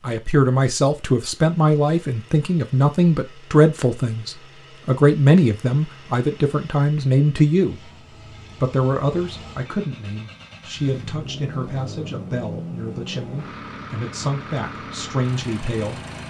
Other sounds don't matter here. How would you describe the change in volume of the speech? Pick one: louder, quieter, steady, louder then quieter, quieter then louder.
quieter.